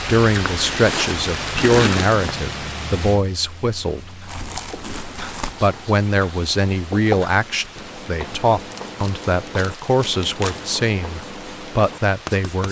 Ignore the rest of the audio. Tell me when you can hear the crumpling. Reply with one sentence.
The crumpling can be heard from 0.4 to 2.4 s, from 4.2 to 5.5 s and from 8.7 to 10.7 s.